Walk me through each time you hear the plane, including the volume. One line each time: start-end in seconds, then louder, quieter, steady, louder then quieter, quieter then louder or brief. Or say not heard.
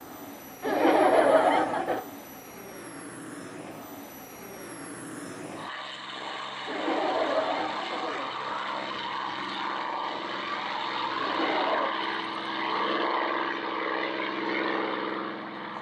0.0-15.7 louder.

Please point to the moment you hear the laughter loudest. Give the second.
1 s.